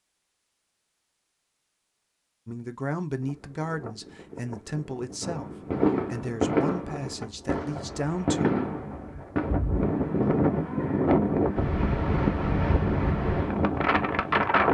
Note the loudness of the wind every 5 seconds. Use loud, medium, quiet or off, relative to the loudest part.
quiet, medium, loud.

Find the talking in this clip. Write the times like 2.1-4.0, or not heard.
2.5-8.6.